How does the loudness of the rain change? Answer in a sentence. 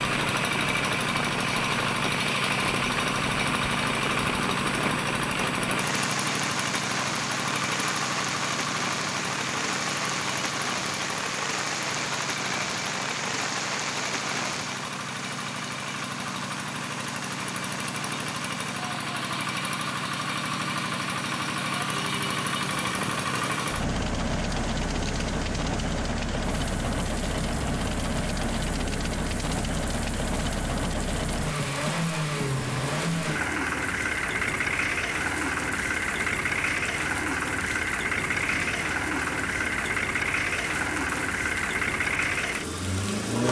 The volume of the rain goes down.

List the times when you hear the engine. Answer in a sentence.
You can hear the engine from 0.0 to 43.4 s.